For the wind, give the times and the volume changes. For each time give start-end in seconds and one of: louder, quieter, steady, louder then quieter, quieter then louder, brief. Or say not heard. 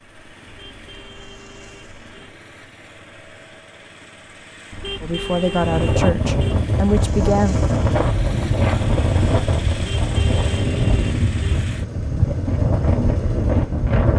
5.5-14.1 steady.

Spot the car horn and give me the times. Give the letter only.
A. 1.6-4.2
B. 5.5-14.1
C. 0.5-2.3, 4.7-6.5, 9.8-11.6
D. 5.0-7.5
C.